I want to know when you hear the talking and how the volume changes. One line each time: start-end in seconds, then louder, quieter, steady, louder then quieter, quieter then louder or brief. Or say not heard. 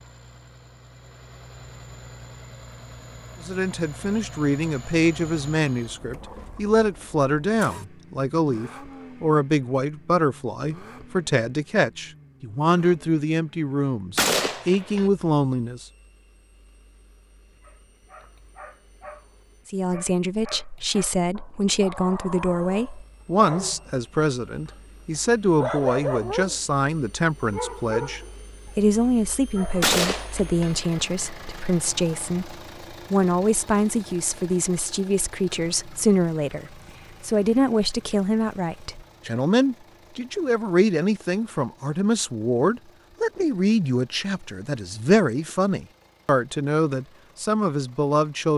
3.4-15.8 steady
19.7-48.5 steady.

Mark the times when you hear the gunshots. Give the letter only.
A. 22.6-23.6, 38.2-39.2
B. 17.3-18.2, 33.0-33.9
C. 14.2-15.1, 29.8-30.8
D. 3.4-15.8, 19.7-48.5
C.